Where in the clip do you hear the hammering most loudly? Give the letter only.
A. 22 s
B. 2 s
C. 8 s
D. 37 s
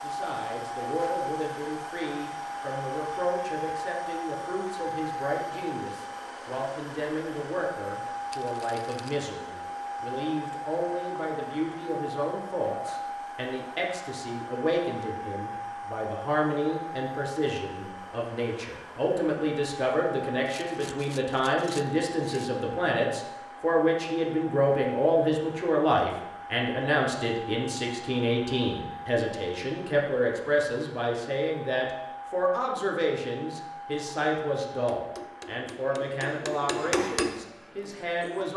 D.